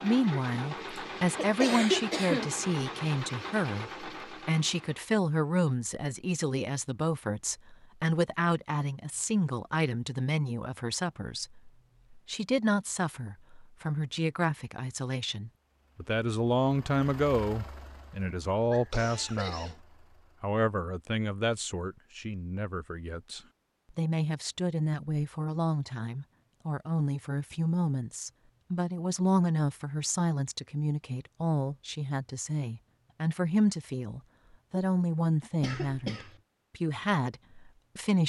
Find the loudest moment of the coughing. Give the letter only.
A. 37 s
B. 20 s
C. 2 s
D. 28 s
C.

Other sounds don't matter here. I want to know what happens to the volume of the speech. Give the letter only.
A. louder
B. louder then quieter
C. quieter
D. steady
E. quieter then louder
D.